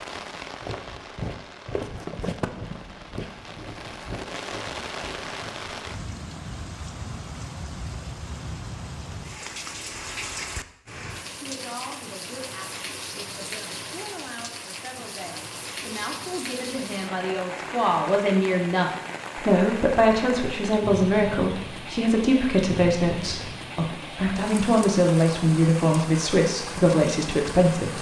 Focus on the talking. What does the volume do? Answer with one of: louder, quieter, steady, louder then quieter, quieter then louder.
louder.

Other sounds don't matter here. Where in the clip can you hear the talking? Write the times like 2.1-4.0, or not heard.
11.3-27.9.